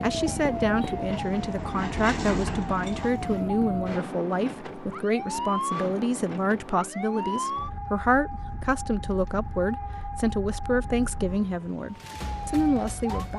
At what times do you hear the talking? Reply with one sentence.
You can hear the talking from 0.0 to 13.3 s.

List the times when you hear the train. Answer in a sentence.
You can hear the train from 0.2 to 3.6 s.